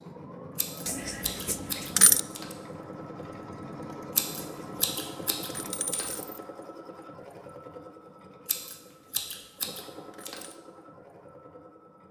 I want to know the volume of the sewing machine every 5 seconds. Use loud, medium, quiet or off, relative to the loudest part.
loud, loud, medium.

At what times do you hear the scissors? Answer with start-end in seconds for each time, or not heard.
0.6-2.5, 4.2-6.1, 8.4-10.4.